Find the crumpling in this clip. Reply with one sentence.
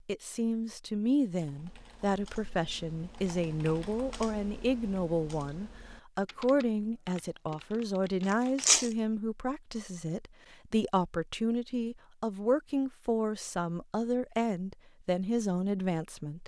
The crumpling can be heard from 8.2 to 8.9 s.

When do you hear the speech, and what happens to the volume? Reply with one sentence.
You can hear the speech from 0.1 to 16.4 s, at a steady volume.